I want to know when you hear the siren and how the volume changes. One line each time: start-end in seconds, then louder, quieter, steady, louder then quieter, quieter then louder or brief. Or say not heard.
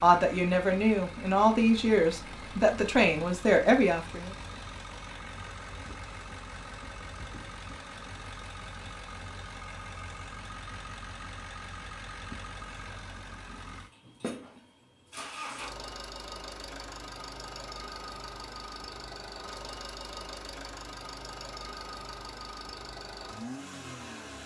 not heard.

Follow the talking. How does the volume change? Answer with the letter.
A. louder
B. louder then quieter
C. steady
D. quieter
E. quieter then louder
C.